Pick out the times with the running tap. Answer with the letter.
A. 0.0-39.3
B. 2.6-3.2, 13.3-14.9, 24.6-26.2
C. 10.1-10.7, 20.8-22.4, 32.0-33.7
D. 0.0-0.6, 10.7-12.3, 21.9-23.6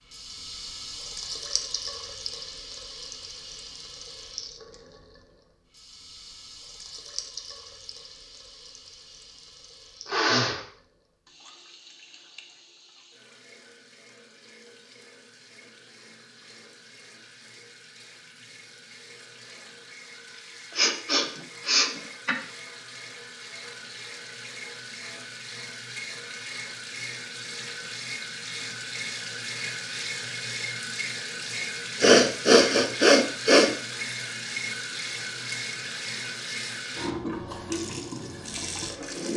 A.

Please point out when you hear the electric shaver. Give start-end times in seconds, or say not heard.
not heard.